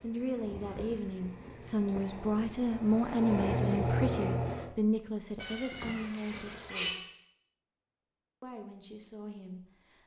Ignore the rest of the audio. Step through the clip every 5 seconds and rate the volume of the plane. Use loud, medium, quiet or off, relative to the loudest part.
loud, off.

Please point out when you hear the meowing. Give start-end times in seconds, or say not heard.
5.4-7.0.